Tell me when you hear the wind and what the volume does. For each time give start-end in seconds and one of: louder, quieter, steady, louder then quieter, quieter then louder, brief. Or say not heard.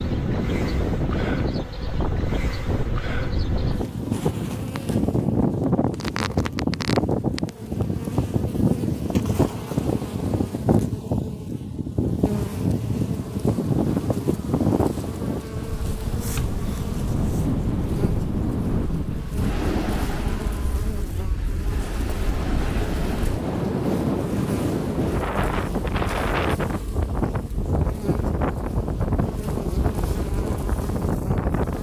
0.0-31.7 steady.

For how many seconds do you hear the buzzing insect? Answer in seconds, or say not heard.
32 s.